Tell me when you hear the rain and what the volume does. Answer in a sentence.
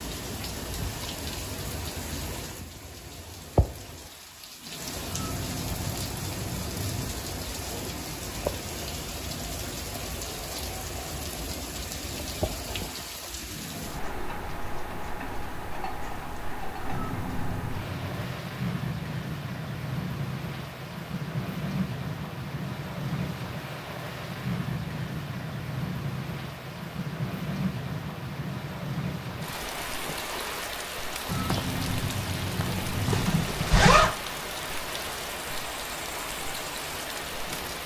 The rain can be heard from 0.0 to 37.8 s, at a steady volume.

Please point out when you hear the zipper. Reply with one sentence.
You can hear the zipper from 33.1 to 34.1 s.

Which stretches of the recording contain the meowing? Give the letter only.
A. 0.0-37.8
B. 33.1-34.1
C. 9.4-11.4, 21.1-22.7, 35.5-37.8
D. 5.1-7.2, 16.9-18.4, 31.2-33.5
D.